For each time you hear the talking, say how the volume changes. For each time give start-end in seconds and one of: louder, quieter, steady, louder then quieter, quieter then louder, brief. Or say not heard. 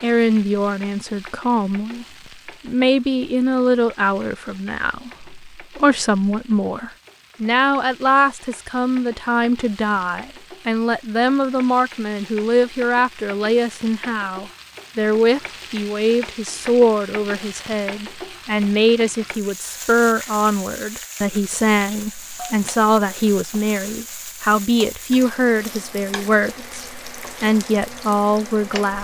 0.0-2.0 brief
2.6-28.9 steady.